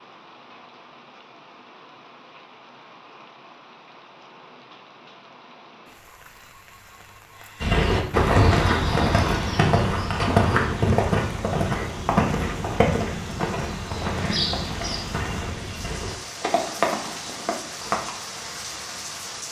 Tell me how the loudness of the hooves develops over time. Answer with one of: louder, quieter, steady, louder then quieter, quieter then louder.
quieter.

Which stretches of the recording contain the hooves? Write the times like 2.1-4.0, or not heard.
7.6-18.1.